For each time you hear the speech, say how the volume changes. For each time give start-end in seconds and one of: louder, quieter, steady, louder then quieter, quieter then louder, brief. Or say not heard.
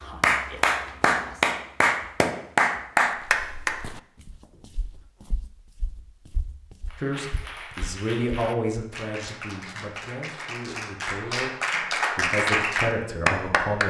7.0-13.8 quieter then louder.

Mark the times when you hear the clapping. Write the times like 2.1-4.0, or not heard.
0.0-3.8, 6.9-13.8.